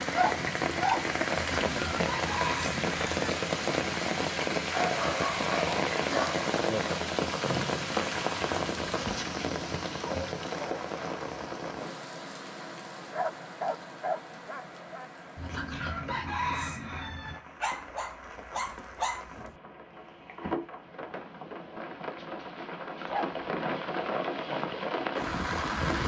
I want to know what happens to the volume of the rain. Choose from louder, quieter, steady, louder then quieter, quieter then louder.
quieter then louder.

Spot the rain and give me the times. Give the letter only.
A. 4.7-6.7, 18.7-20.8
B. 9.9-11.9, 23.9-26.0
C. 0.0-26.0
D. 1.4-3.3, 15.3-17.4
C.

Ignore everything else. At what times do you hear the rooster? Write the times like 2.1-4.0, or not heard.
1.4-3.3, 15.3-17.4.